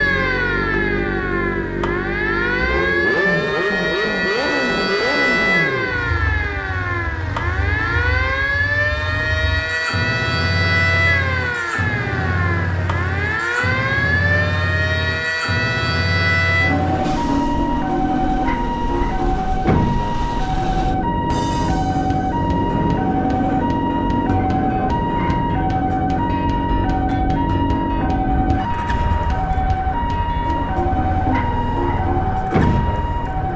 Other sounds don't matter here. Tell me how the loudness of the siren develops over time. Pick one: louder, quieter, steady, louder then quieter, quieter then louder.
steady.